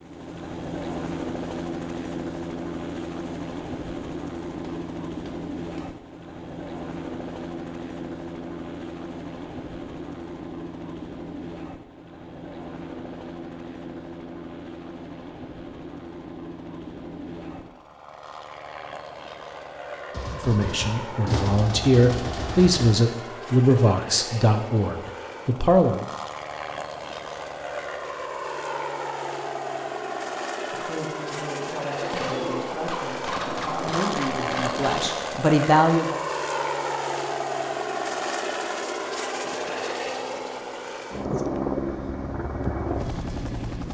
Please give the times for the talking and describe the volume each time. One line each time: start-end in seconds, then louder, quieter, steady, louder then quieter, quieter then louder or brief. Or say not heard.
20.3-26.1 louder then quieter
30.7-36.1 louder.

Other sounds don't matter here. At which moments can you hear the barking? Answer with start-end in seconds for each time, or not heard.
not heard.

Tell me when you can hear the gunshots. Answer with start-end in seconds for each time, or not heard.
4.6-5.9, 20.1-23.0, 32.0-35.2.